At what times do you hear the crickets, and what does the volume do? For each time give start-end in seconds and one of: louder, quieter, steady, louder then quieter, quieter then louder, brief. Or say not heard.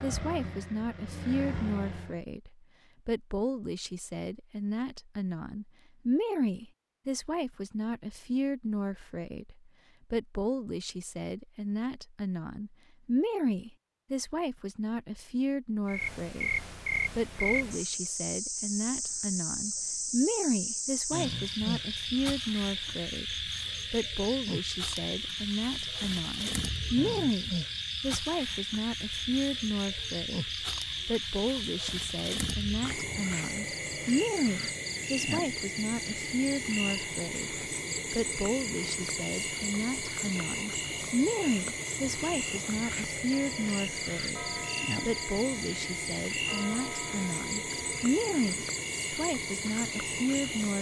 15.8-50.7 steady.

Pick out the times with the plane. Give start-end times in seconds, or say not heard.
0.0-2.2.